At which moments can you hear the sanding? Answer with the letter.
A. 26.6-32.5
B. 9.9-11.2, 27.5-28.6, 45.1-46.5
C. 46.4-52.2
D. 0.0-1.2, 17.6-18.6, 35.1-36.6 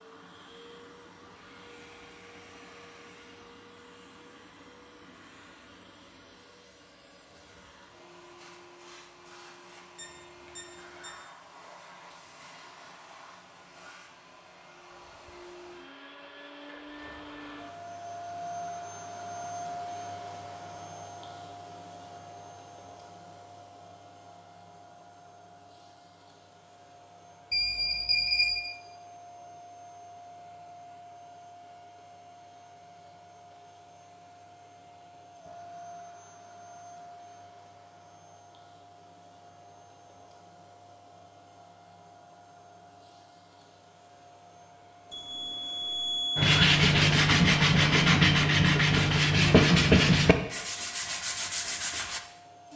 C.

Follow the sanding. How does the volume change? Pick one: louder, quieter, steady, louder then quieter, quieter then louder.
quieter.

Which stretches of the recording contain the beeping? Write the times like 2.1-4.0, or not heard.
9.9-11.2, 27.5-28.6, 45.1-46.5.